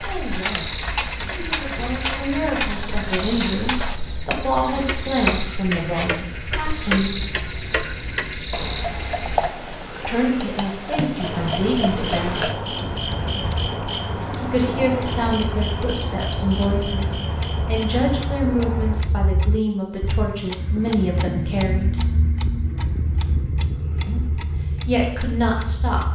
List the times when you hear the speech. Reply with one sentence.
The speech can be heard from 0.0 to 7.1 s, from 10.1 to 12.5 s, from 14.3 to 22.1 s and from 24.1 to 26.0 s.